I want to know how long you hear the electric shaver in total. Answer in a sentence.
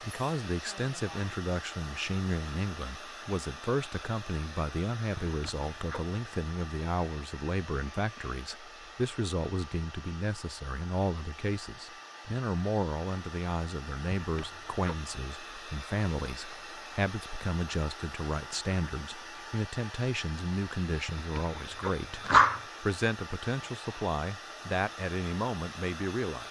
The electric shaver can't be heard in this clip.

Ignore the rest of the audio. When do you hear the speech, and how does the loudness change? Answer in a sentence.
The speech can be heard from 0.0 to 26.4 s, at a steady volume.